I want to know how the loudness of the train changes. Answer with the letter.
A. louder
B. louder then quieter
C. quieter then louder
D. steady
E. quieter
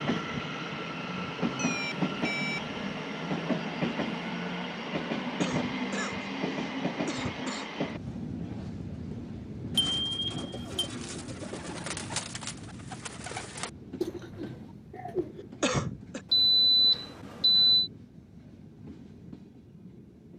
E.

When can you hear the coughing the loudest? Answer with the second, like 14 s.
16 s.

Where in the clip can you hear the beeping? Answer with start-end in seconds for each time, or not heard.
1.4-2.8, 9.8-10.9, 16.3-17.9.